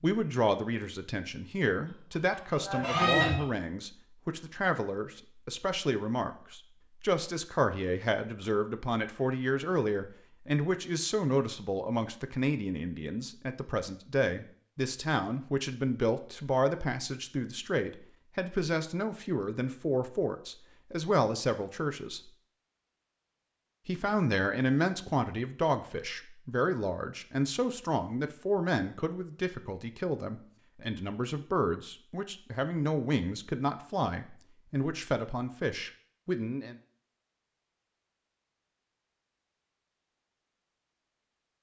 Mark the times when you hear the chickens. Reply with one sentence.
You can hear the chickens from 1.9 to 3.5 s.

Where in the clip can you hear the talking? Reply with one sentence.
The talking can be heard from 0.0 to 22.3 s and from 23.9 to 36.8 s.